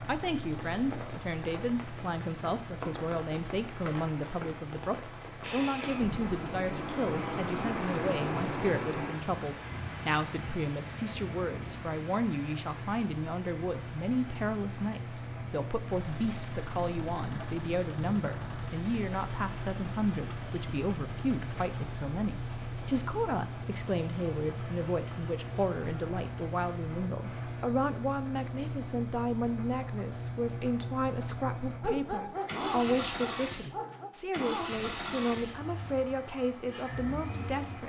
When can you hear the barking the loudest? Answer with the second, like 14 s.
32 s.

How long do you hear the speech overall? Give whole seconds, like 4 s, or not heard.
38 s.